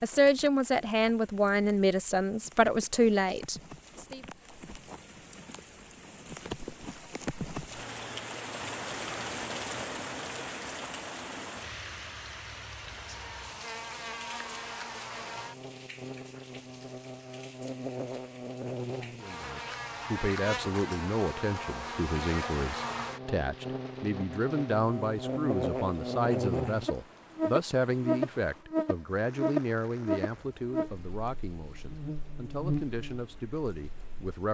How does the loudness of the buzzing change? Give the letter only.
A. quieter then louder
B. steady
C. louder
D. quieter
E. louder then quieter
C.